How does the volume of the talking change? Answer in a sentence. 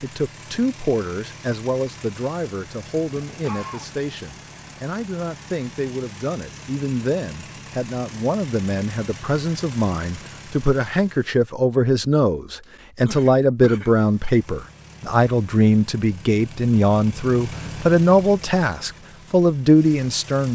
The loudness of the talking goes up.